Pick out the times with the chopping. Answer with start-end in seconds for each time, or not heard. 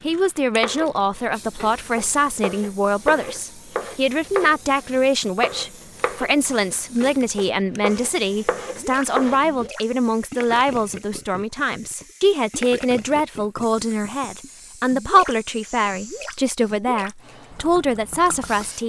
0.6-9.7.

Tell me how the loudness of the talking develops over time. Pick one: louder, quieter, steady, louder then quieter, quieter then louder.
steady.